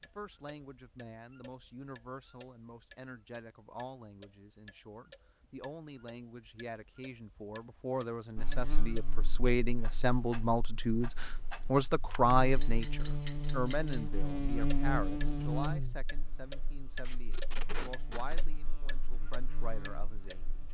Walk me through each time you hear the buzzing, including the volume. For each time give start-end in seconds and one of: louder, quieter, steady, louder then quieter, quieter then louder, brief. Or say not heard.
8.3-20.6 louder then quieter.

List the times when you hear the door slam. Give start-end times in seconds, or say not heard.
not heard.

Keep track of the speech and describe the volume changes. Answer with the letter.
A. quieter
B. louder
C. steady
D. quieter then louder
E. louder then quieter
E.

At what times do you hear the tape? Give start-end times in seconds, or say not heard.
17.1-18.6.